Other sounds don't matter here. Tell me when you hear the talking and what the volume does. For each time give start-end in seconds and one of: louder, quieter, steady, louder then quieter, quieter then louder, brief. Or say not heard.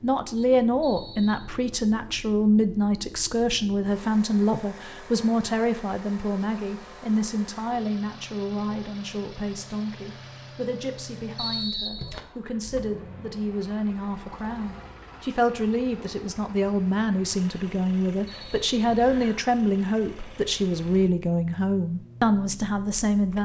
0.0-23.4 quieter then louder.